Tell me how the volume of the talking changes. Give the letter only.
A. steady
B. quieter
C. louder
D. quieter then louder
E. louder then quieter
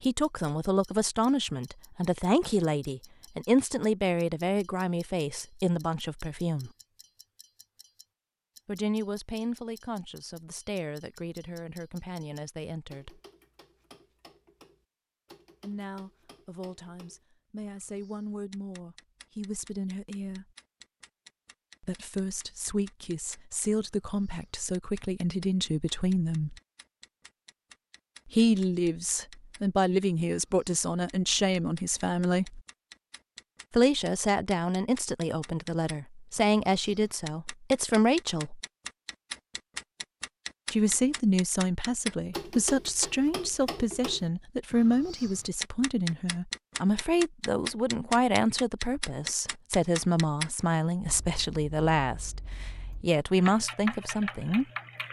D.